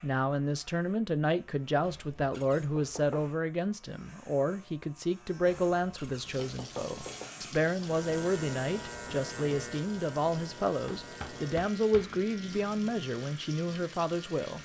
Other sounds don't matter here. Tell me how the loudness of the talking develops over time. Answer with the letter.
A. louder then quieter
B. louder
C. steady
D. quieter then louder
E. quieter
C.